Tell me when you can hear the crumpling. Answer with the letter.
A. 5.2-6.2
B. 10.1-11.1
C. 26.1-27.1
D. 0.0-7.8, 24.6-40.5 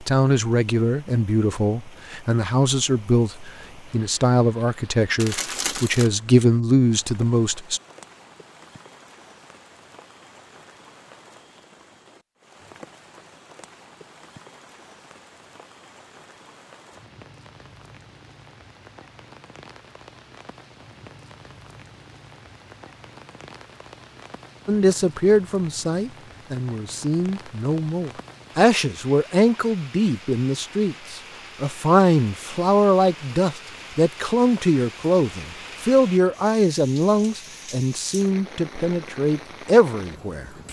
A.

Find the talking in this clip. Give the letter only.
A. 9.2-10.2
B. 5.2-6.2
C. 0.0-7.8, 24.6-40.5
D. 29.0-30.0
C.